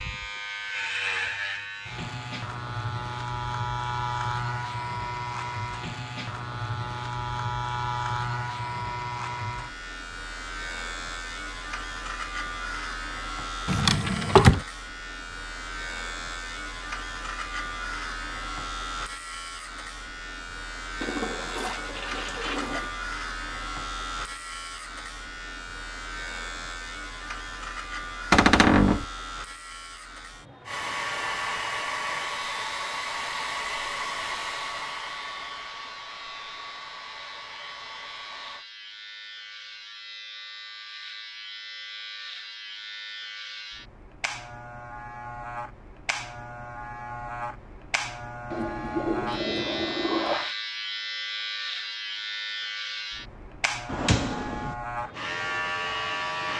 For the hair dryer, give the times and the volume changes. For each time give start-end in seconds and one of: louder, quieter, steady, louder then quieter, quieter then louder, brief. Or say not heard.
30.6-38.6 quieter.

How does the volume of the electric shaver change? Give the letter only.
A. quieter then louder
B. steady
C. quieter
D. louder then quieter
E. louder
A.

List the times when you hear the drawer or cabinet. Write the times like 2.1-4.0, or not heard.
13.7-14.6, 28.3-29.1, 53.9-54.8.